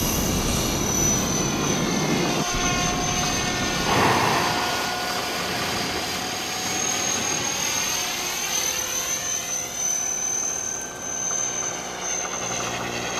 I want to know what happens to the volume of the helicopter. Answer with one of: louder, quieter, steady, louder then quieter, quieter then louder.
steady.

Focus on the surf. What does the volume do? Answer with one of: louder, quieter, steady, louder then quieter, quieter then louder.
quieter.